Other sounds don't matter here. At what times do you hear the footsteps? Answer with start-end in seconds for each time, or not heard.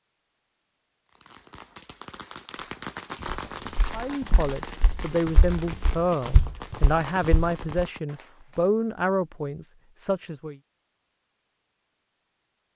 3.2-7.8.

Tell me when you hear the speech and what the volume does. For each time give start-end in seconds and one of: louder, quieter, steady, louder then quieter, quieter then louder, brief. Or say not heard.
3.9-10.6 steady.